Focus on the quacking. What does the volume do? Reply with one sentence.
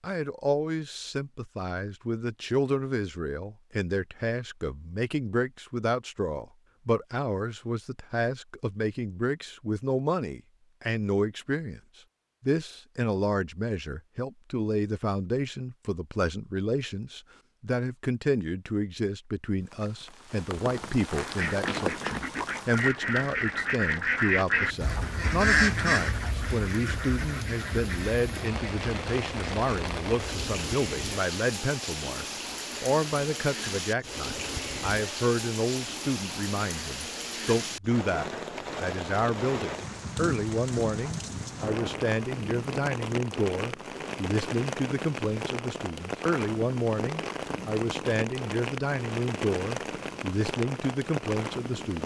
The loudness of the quacking goes up, then down.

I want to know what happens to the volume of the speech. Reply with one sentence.
The volume of the speech stays about the same.